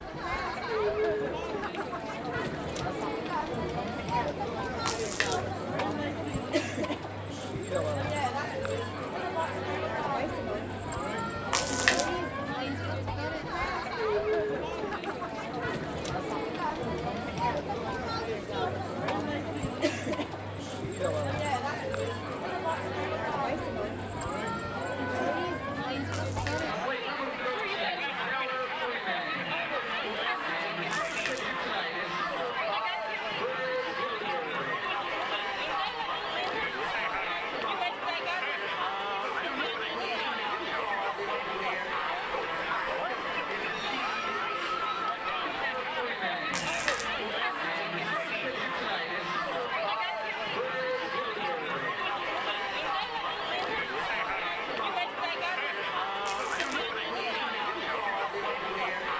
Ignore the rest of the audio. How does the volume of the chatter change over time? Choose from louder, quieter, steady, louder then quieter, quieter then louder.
steady.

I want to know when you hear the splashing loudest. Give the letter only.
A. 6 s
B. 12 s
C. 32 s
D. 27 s
B.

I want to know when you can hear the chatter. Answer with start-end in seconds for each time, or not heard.
0.0-59.1.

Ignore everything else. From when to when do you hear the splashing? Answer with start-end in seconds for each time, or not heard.
4.8-5.5, 11.5-12.2, 26.1-26.7, 30.9-31.6, 46.5-47.2, 56.2-56.9.